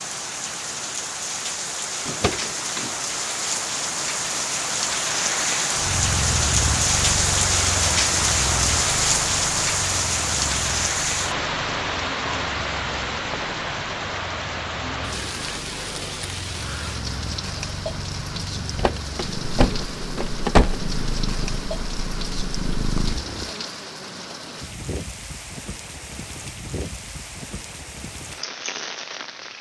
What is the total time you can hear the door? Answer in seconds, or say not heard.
3 s.